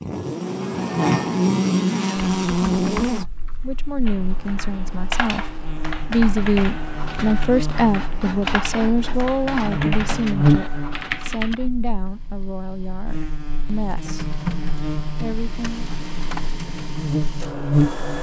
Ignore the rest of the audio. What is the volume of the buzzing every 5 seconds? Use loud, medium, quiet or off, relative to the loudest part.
loud, medium, loud, loud.